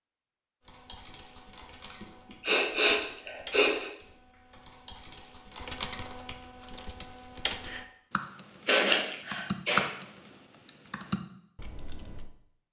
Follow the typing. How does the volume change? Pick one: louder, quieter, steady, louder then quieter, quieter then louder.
louder.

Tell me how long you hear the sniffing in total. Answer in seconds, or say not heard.
3 s.